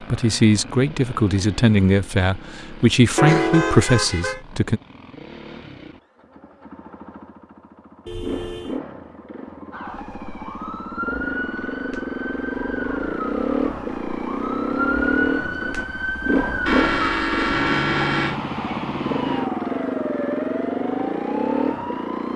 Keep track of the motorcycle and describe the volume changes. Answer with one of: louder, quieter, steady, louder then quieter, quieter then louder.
louder.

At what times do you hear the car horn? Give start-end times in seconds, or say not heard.
3.1-4.4, 8.1-8.8, 16.6-18.4.